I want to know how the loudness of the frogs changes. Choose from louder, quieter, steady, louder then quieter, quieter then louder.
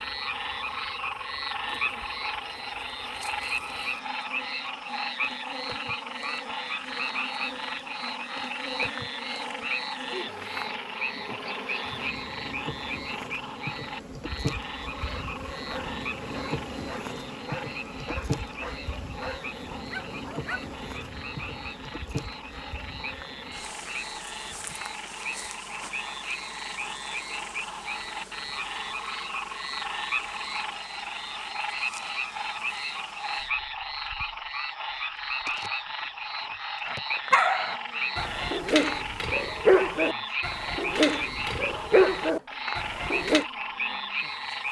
quieter then louder.